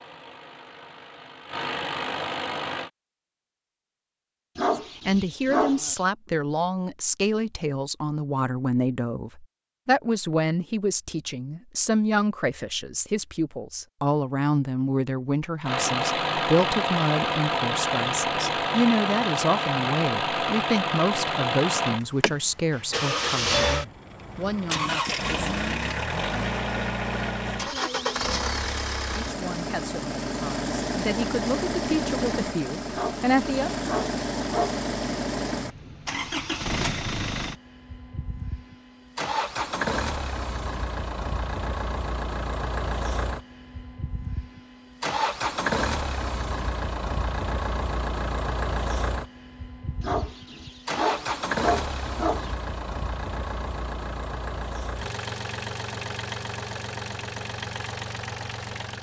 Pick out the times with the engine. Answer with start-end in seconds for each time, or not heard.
0.0-2.9, 15.7-58.9.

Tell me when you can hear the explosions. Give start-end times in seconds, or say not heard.
not heard.